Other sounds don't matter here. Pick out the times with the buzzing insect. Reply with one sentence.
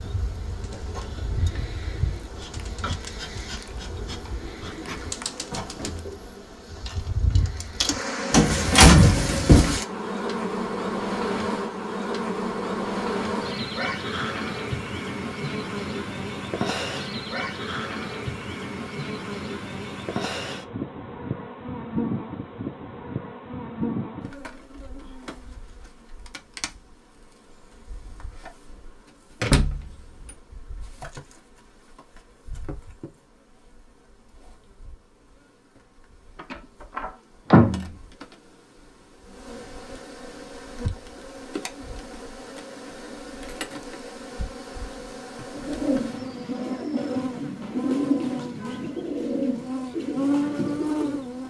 The buzzing insect can be heard from 0.0 to 51.4 s.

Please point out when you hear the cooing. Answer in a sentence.
The cooing can be heard from 0.5 to 6.2 s and from 45.5 to 51.3 s.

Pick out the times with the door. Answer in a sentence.
You can hear the door from 8.3 to 9.8 s, from 29.4 to 29.9 s and from 36.5 to 37.9 s.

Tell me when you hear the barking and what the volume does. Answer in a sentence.
The barking can't be heard in this clip.